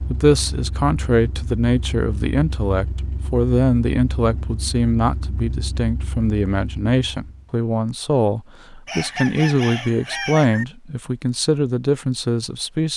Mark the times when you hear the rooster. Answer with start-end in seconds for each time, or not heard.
8.8-10.7.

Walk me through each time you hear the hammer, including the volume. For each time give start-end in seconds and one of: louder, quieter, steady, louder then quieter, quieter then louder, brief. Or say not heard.
not heard.